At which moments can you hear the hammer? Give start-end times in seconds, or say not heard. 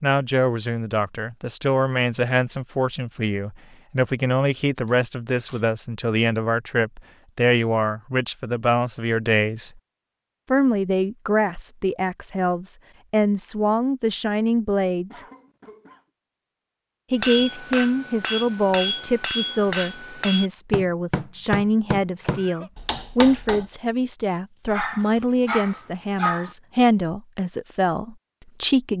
17.2-23.7.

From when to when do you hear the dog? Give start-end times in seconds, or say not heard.
24.7-26.6.